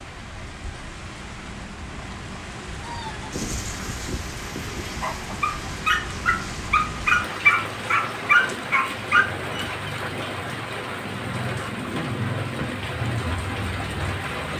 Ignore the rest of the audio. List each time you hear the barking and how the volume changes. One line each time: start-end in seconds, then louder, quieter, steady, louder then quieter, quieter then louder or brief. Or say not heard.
2.9-9.7 louder.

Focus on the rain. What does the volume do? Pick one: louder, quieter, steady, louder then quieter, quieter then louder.
louder.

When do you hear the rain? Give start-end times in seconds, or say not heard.
0.0-14.5.